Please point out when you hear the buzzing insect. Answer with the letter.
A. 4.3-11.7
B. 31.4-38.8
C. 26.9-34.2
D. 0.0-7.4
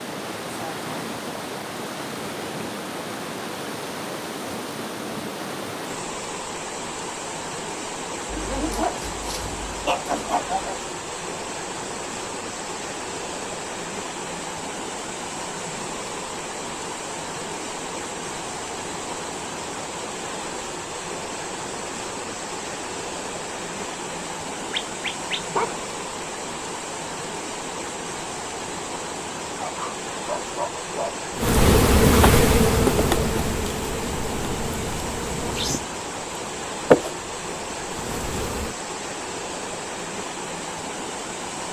B.